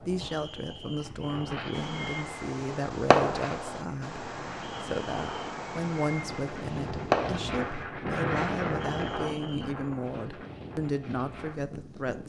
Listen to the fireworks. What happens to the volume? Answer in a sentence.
The loudness of the fireworks goes down, then up.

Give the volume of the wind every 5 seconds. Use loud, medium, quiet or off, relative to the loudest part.
medium, loud, medium.